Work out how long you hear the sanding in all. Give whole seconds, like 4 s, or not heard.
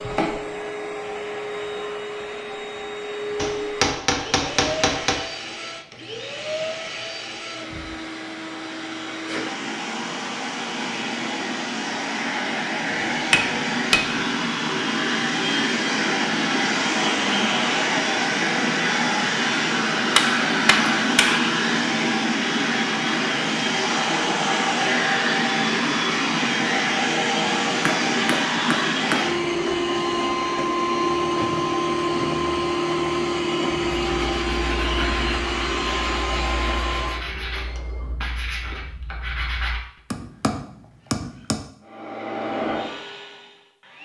6 s.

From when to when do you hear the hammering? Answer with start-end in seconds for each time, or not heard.
3.4-5.2, 12.9-14.2, 20.1-21.4, 27.9-29.2, 40.1-41.6.